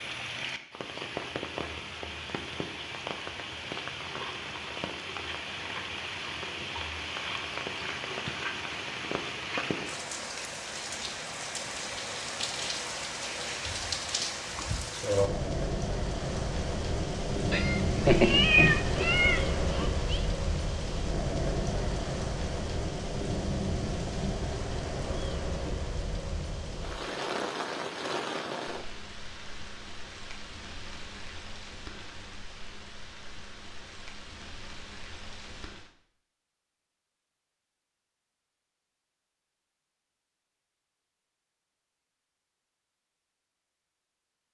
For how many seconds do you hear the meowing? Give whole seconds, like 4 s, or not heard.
3 s.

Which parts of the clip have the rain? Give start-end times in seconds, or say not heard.
0.0-35.9.